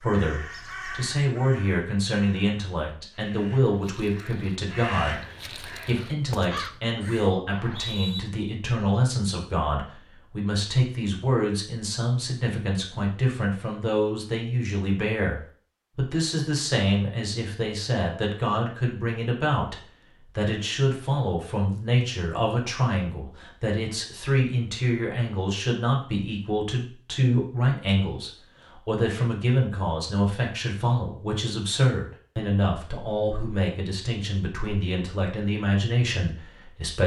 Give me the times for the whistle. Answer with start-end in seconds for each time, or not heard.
7.5-8.2.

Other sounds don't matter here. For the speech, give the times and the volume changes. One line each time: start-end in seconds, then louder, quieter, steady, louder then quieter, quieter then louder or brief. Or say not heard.
0.0-37.0 steady.